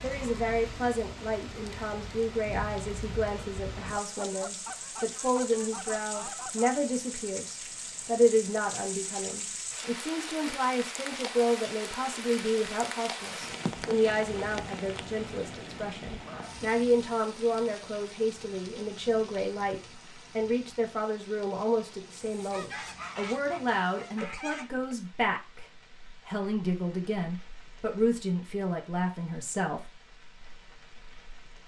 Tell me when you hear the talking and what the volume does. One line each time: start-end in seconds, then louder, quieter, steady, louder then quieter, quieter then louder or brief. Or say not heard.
0.0-29.8 steady.